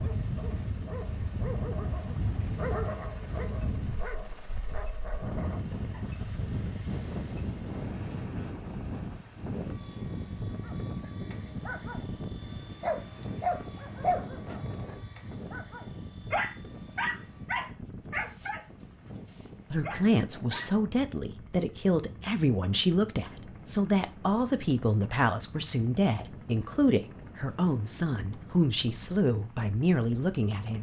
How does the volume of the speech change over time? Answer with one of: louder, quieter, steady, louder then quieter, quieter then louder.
steady.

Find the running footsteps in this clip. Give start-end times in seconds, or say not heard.
not heard.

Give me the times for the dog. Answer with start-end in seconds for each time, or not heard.
0.0-6.0, 10.5-20.8.